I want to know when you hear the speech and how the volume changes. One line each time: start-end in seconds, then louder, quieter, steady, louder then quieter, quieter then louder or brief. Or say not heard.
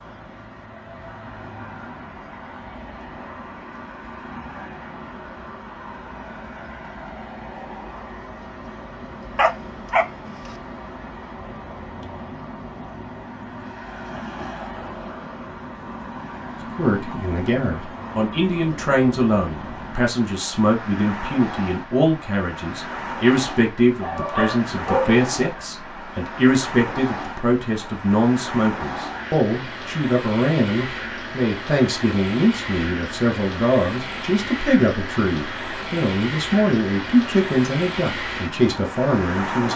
16.8-39.7 steady.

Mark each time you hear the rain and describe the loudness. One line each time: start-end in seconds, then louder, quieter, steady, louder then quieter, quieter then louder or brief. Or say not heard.
not heard.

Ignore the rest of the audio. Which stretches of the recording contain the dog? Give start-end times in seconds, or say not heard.
9.3-10.1, 24.0-25.6.